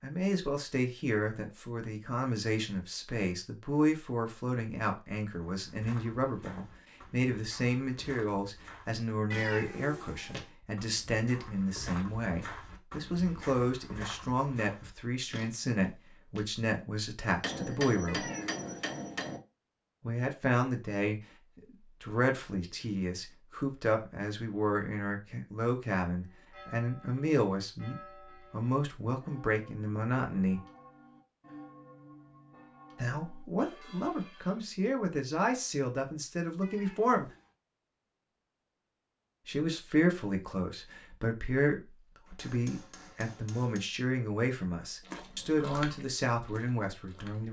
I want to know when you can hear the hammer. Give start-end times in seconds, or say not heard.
17.4-19.4, 42.2-43.9.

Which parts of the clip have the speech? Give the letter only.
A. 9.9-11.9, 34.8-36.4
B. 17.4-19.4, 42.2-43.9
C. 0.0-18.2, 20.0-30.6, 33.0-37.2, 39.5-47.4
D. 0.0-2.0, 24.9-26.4
C.